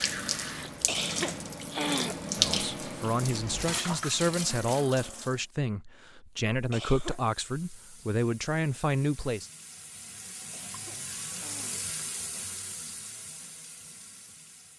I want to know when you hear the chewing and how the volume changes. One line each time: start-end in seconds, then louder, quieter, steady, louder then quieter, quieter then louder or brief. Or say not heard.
not heard.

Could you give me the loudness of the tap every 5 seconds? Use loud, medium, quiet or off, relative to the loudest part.
loud, quiet, medium.